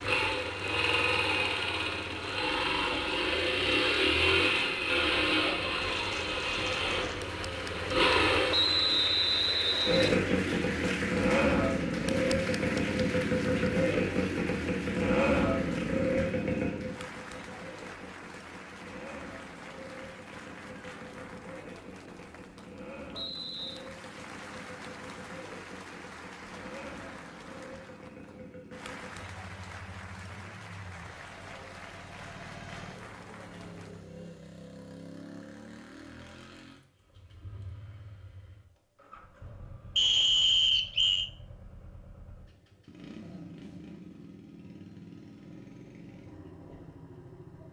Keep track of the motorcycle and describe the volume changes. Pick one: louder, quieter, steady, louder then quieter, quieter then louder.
quieter.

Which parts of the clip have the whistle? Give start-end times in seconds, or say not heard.
8.5-10.2, 23.1-23.8, 40.0-41.3.